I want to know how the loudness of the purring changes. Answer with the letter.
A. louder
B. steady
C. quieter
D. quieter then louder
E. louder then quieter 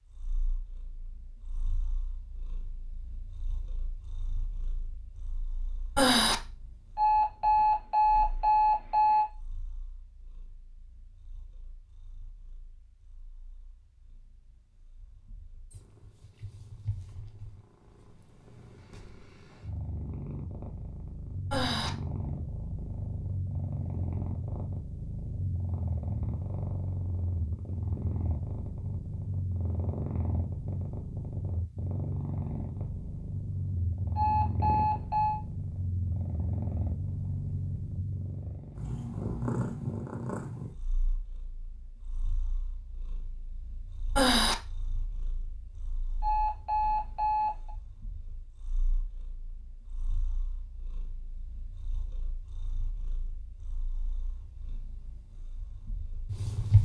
E.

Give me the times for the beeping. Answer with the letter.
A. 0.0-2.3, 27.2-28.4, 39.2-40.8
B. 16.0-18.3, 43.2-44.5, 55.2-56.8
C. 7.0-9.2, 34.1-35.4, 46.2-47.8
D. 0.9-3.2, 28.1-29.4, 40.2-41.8
C.